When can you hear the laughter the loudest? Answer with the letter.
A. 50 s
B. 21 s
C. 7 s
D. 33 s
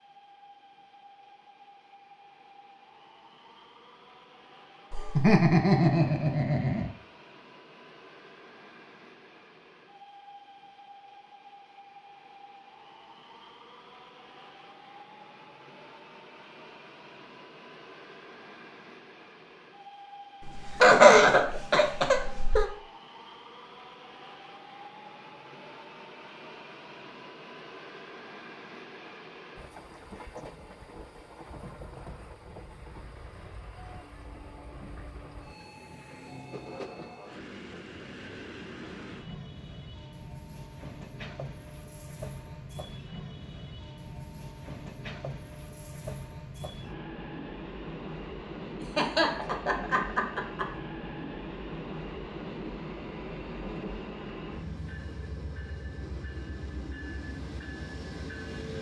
B.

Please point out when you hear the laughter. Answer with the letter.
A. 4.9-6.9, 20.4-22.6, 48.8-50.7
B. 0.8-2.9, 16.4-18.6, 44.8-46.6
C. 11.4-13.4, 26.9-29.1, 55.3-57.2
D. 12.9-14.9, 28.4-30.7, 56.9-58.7
A.